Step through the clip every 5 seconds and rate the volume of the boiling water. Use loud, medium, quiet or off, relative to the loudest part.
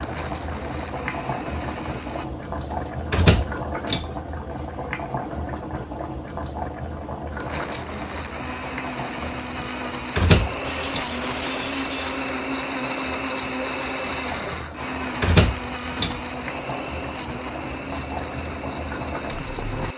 loud, loud, medium, loud.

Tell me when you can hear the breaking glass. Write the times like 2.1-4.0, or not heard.
10.6-12.2.